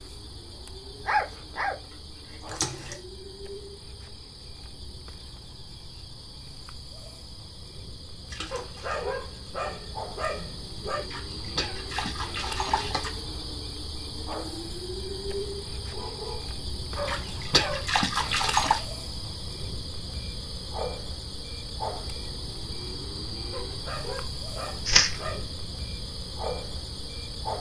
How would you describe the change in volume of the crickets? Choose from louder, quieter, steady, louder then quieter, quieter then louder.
louder.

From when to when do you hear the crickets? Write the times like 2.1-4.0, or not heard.
0.0-27.5.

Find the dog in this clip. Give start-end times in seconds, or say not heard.
1.1-3.0, 8.5-11.1, 15.9-17.9, 23.5-25.6.